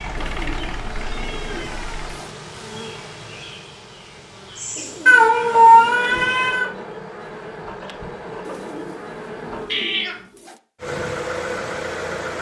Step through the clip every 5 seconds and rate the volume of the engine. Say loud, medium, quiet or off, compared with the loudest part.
medium, off, loud.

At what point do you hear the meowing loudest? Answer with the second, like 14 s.
6 s.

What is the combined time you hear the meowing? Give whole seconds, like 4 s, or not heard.
4 s.